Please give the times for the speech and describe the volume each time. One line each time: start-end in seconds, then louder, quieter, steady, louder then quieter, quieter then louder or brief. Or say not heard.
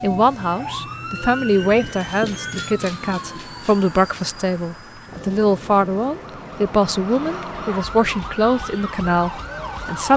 0.0-10.1 steady.